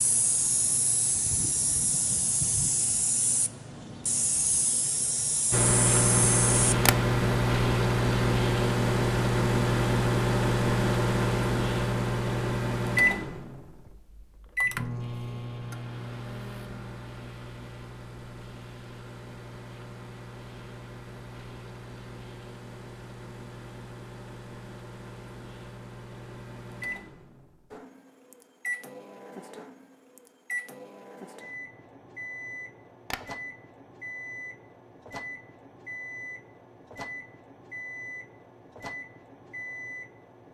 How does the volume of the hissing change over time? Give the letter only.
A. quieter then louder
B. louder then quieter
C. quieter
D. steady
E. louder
D.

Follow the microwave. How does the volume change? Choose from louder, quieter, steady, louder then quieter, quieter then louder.
quieter.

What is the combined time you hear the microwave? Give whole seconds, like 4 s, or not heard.
35 s.